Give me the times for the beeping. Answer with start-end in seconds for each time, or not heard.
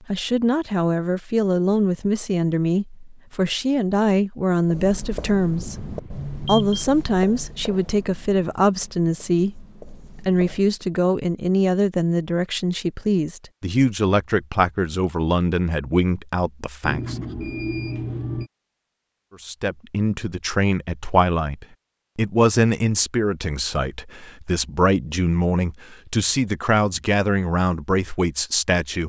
5.5-6.8, 16.8-18.5.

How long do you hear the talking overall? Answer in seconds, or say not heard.
27 s.